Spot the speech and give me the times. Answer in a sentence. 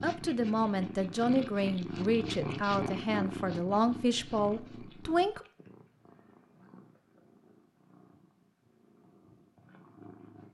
The speech can be heard from 0.0 to 5.5 s.